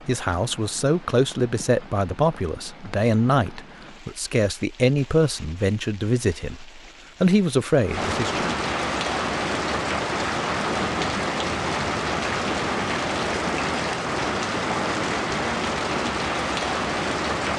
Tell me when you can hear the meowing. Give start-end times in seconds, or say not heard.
not heard.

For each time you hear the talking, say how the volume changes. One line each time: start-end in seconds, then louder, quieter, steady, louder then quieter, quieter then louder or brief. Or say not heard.
0.1-8.5 steady.